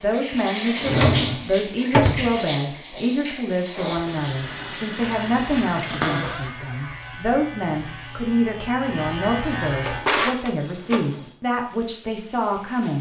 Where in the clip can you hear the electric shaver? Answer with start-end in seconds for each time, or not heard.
5.0-10.1.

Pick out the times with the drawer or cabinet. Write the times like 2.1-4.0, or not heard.
0.8-2.3, 5.9-6.5, 9.7-11.3.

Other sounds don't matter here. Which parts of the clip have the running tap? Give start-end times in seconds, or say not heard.
0.0-6.5, 9.8-12.9.